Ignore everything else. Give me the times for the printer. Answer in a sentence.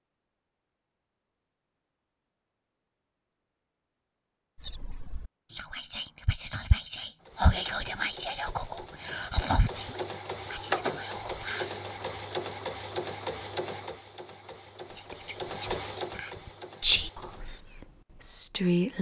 You can hear the printer from 7.2 to 17.6 s.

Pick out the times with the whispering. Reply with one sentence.
You can hear the whispering from 4.5 to 11.8 s and from 14.9 to 18.9 s.